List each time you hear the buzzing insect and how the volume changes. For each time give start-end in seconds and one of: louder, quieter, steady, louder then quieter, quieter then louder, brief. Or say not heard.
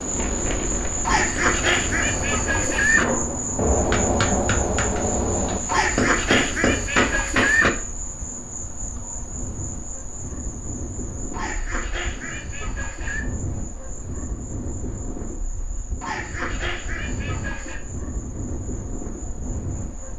0.0-20.1 quieter.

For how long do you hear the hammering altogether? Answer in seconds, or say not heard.
5 s.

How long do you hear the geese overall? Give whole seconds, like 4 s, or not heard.
8 s.